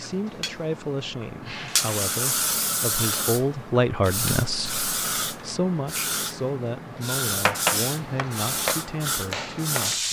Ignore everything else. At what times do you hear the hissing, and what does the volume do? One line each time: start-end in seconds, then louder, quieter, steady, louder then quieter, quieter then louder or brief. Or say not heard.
0.0-10.0 steady.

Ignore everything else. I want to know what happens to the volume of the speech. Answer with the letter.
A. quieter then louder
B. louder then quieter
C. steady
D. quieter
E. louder
B.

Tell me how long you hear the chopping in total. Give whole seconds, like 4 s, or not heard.
3 s.